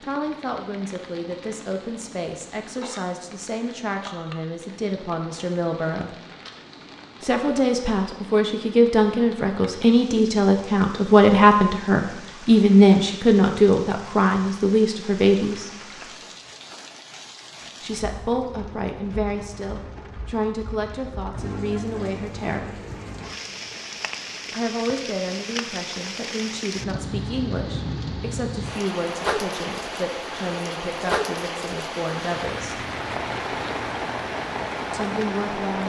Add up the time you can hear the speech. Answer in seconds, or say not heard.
29 s.